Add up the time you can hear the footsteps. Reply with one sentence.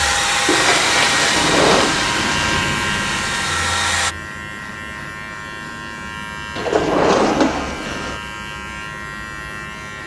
You can't hear the footsteps here.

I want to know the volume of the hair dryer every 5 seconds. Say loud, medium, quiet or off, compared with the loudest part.
loud, off.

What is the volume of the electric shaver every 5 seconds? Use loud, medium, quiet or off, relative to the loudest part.
loud, medium.